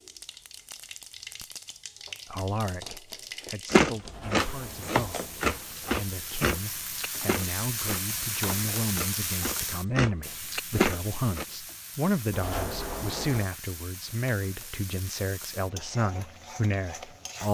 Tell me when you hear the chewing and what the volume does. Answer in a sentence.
You can hear the chewing from 3.7 to 11.4 s, getting quieter then louder.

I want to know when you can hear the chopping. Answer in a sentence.
The chopping can't be heard in this clip.